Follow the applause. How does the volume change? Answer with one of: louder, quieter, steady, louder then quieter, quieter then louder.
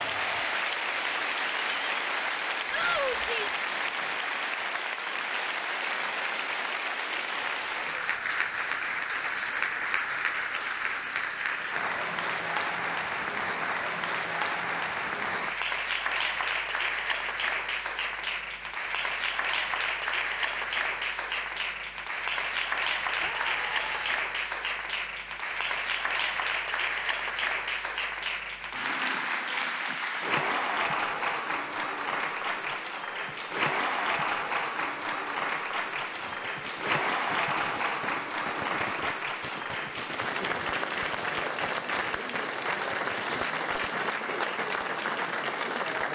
steady.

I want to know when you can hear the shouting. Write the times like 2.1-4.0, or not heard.
2.7-3.6, 23.2-24.2.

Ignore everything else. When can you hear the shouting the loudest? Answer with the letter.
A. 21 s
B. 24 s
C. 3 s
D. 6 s
C.